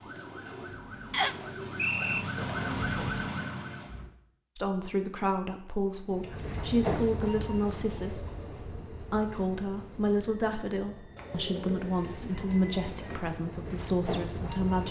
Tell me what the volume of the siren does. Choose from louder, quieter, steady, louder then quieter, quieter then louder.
louder.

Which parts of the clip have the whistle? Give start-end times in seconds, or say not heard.
1.1-2.2.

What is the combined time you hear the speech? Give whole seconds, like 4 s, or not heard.
10 s.